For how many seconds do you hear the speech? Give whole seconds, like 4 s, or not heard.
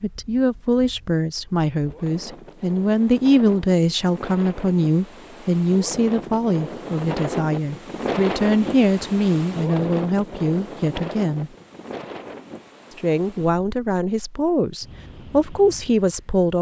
15 s.